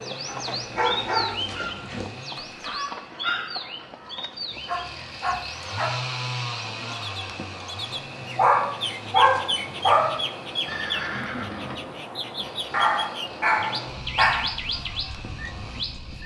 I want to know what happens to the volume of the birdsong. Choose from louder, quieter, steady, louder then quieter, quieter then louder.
steady.